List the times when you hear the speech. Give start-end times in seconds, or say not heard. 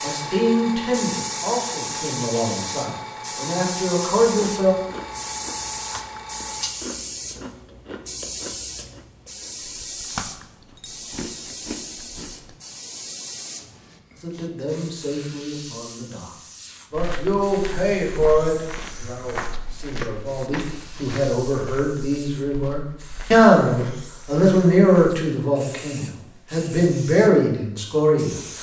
0.0-4.8, 14.2-16.2, 16.9-28.4.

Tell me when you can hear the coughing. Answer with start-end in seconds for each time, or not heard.
not heard.